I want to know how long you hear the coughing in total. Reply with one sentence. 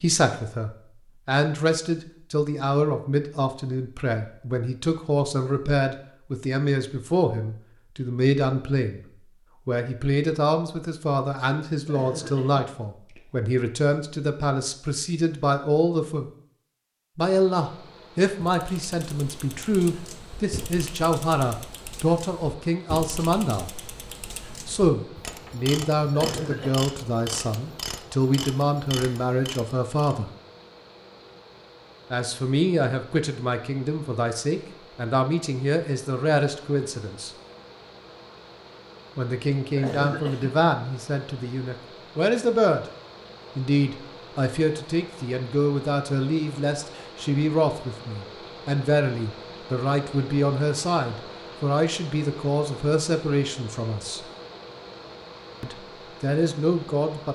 The coughing can be heard for 3 seconds in total.